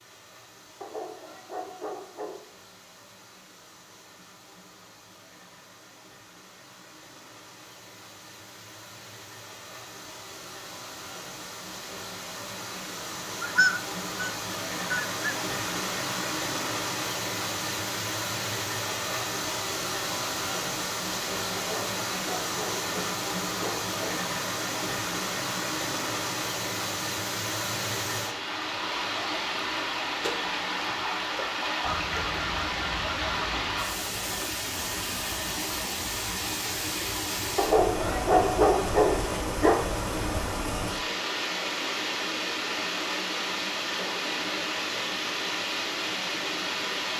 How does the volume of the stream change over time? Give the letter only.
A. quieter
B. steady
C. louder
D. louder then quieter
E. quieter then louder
C.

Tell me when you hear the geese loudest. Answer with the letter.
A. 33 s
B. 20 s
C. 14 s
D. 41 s
C.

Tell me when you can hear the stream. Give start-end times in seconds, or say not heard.
0.0-47.1.